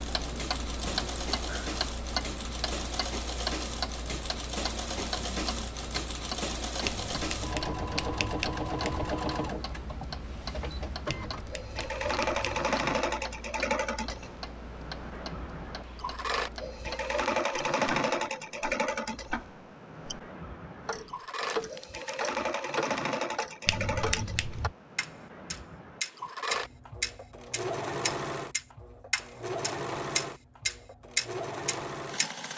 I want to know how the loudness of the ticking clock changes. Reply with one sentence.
The volume of the ticking clock goes down, then up.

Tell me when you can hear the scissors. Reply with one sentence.
The scissors can be heard from 6.8 to 9.1 s, from 11.1 to 12.4 s and from 23.6 to 24.7 s.